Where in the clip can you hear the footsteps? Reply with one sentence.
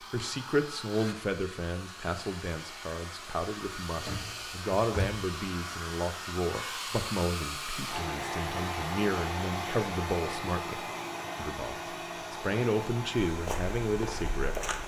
You can hear the footsteps from 13.2 to 14.8 s.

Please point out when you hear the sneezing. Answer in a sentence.
The sneezing can't be heard in this clip.